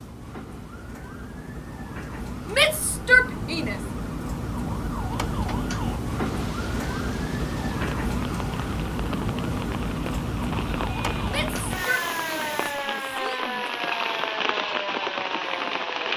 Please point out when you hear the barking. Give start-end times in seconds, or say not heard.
not heard.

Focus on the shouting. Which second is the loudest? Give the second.
3 s.